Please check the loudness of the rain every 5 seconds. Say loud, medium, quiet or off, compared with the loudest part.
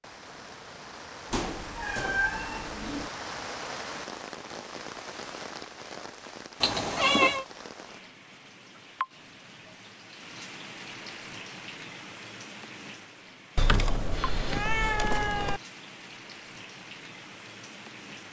loud, loud, loud, medium.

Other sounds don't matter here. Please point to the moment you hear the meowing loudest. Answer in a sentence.
The volume of the meowing peaks at 7 seconds.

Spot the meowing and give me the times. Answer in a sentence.
The meowing can be heard from 1.3 to 3.1 s, from 6.6 to 7.5 s and from 13.6 to 15.6 s.